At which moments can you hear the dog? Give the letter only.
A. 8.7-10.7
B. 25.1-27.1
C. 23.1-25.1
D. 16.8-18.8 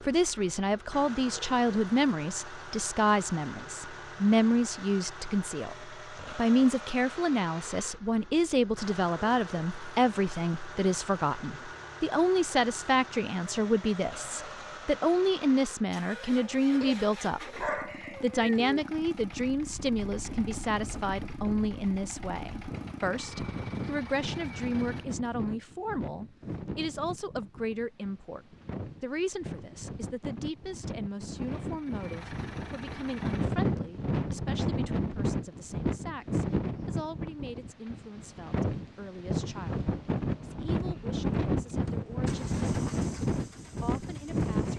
D.